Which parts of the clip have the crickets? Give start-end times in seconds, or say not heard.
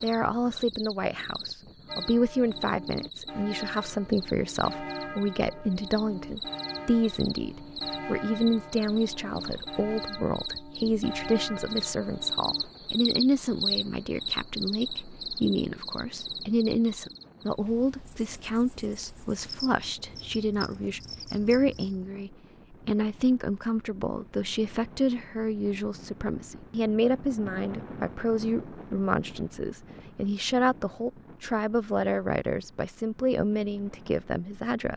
0.0-22.1.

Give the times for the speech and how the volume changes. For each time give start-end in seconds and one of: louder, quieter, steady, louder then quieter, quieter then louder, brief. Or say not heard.
0.0-34.9 steady.